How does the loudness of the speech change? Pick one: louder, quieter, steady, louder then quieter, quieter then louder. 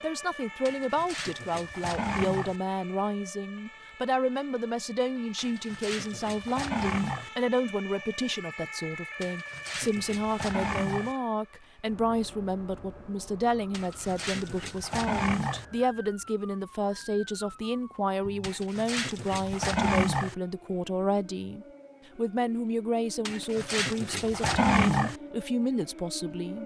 steady.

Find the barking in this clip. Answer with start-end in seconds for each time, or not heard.
0.7-2.5, 5.3-7.3, 9.2-11.2, 13.7-15.7, 18.4-20.4, 23.2-25.1.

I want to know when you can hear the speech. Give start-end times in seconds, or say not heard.
0.0-26.6.